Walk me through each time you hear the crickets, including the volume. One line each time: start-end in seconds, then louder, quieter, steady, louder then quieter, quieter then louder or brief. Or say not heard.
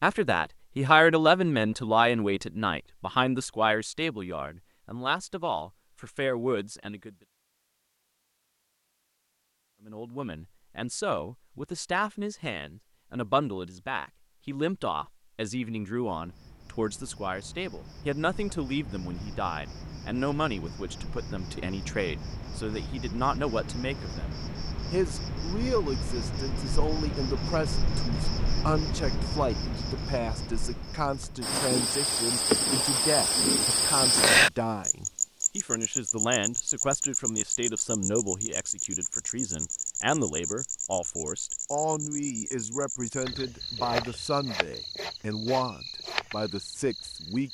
16.1-47.5 louder then quieter.